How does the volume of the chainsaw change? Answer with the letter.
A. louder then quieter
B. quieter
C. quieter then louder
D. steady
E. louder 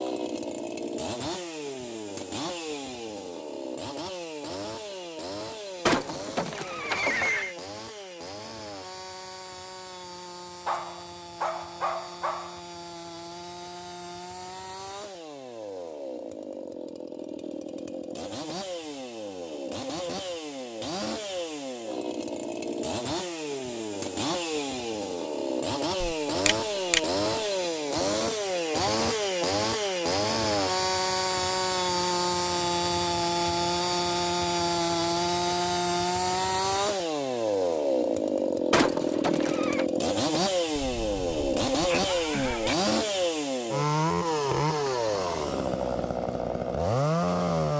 E.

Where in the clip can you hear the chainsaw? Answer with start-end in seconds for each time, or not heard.
0.0-47.7.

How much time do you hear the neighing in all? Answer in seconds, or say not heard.
4 s.